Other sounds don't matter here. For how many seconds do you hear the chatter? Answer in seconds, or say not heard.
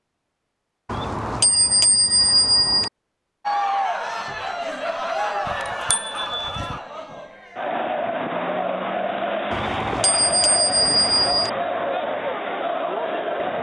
10 s.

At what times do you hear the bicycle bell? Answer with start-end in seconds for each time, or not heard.
0.8-2.9, 5.5-6.8, 9.5-11.5.